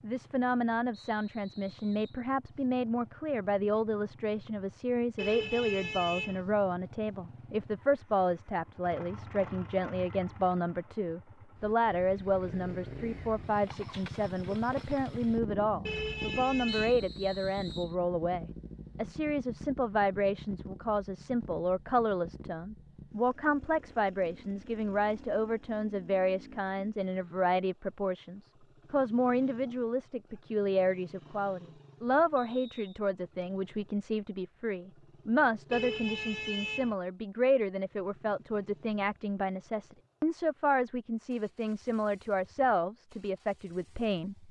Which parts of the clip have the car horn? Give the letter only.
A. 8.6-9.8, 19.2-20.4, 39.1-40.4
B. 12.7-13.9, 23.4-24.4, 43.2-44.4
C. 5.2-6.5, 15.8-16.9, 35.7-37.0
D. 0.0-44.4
C.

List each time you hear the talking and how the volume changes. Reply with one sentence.
The talking can be heard from 0.0 to 44.4 s, at a steady volume.